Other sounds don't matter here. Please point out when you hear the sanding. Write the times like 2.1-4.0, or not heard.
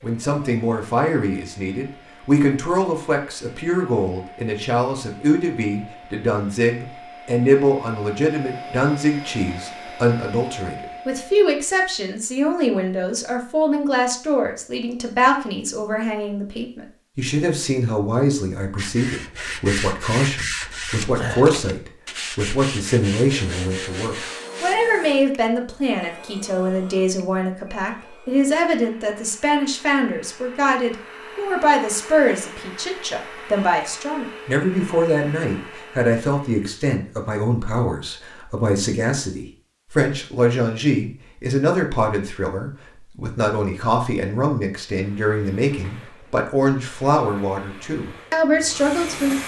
18.8-24.8.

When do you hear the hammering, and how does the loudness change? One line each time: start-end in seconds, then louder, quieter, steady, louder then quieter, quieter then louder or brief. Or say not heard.
not heard.